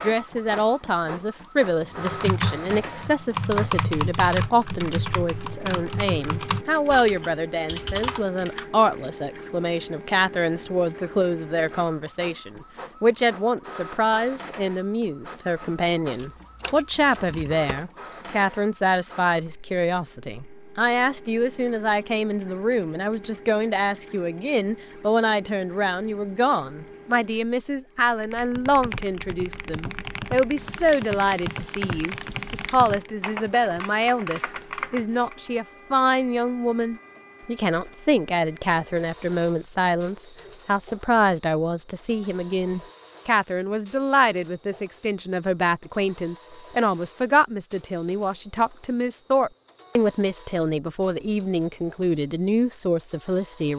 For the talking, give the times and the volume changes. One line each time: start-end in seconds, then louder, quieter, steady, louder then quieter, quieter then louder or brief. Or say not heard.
0.0-53.7 steady.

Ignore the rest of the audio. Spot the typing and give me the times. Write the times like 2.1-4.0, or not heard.
1.8-9.1, 28.2-35.4.